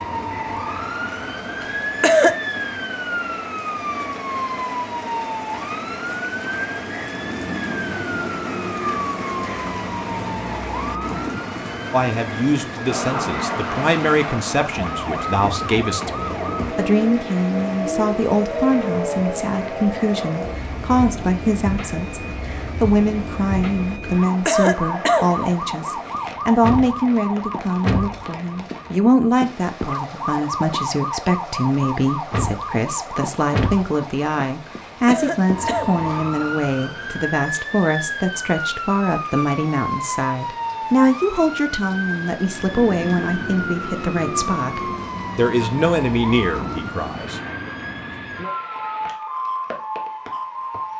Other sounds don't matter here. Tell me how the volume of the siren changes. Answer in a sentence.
The volume of the siren stays about the same.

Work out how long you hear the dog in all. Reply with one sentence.
The dog can't be heard in this clip.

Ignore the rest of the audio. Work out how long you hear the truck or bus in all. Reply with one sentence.
The truck or bus can't be heard in this clip.